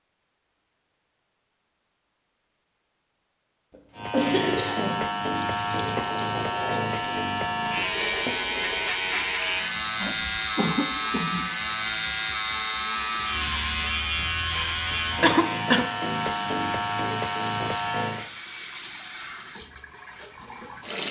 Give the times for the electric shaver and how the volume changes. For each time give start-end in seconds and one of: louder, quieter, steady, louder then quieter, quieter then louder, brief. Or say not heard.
4.0-18.3 steady.